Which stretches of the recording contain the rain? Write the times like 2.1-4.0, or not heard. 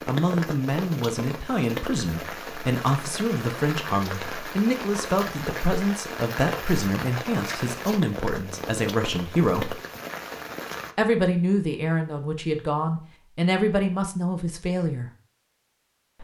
0.0-10.9.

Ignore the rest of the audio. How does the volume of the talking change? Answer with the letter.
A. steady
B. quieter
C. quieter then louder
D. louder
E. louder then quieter
A.